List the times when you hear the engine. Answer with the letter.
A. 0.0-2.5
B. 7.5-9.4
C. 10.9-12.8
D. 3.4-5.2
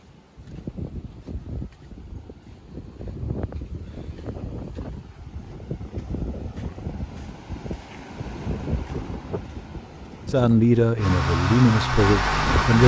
C.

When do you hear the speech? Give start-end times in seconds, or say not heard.
10.2-12.8.